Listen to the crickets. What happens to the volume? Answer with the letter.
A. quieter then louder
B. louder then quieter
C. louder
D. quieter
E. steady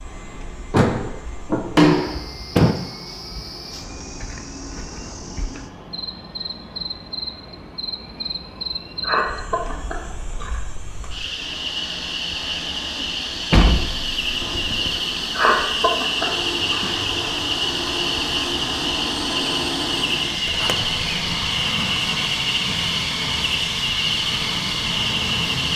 C.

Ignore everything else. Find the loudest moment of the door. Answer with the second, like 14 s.
2 s.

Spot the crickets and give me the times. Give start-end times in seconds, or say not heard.
0.0-25.7.